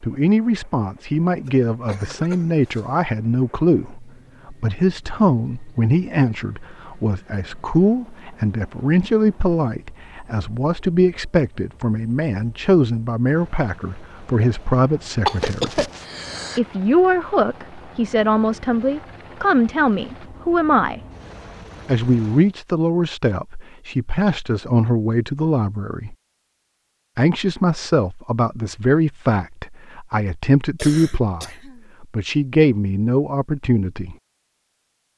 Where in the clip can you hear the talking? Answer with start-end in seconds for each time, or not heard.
0.0-15.8, 16.6-21.0, 21.9-26.1, 27.1-34.1.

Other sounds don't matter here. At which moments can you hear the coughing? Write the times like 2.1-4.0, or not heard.
1.4-2.9, 15.2-16.6, 30.8-31.9.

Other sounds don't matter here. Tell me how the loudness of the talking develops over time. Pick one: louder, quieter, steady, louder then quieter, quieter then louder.
steady.